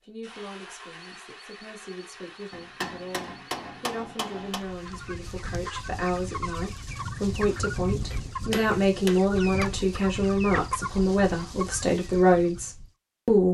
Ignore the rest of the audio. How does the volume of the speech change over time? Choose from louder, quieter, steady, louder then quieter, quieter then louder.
louder.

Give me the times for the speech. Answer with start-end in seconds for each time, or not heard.
0.0-13.4.